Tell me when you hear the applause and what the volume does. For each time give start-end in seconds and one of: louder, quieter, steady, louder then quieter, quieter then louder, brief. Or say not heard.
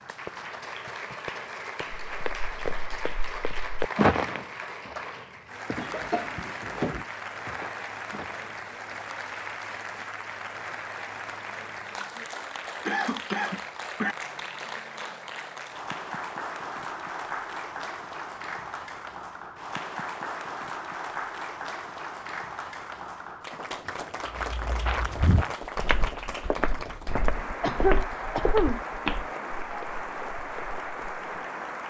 0.0-31.8 steady.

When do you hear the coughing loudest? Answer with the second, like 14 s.
28 s.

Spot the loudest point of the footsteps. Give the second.
4 s.